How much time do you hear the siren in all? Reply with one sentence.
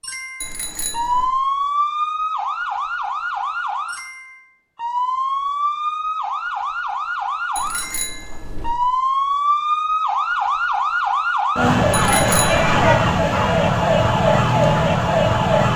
The siren can be heard for 16 seconds in total.